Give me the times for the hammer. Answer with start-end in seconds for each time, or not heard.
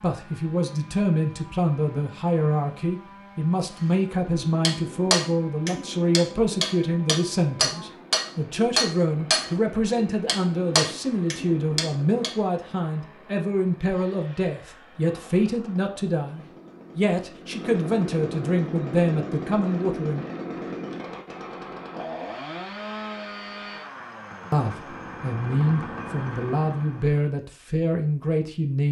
4.3-12.3.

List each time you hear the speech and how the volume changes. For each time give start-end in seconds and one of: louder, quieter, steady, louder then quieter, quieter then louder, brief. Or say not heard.
0.0-20.2 steady
24.5-28.8 steady.